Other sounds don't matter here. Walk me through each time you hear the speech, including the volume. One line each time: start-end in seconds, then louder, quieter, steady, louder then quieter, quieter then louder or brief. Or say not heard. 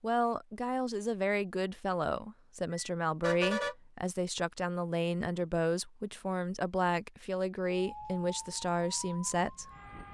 0.0-9.7 steady.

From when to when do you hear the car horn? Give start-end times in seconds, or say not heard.
2.7-3.8.